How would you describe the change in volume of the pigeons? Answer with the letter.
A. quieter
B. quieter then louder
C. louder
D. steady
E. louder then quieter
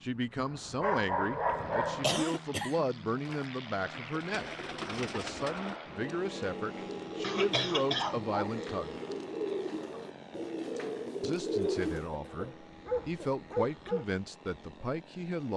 C.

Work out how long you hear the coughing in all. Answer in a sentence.
You can hear the coughing for 4 seconds altogether.